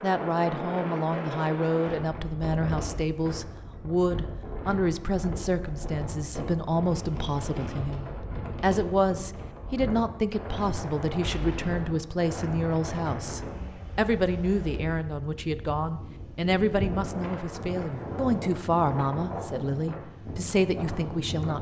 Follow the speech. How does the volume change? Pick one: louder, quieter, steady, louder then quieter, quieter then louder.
steady.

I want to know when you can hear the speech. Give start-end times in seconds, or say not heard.
0.0-21.5.